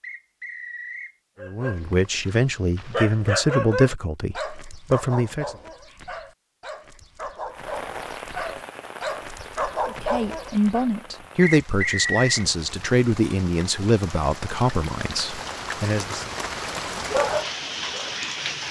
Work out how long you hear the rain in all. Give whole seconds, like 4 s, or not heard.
11 s.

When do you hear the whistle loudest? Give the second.
12 s.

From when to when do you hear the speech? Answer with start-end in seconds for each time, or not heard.
1.4-5.5, 9.8-16.3.